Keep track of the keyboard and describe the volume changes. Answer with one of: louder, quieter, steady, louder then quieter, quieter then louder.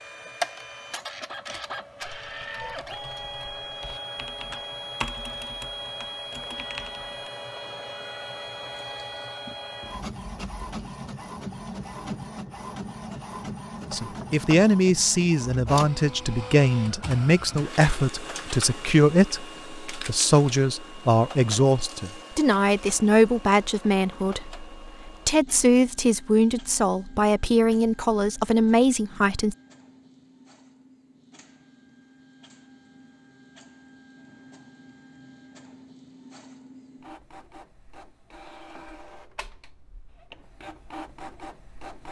louder then quieter.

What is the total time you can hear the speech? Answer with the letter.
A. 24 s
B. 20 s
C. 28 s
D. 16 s
D.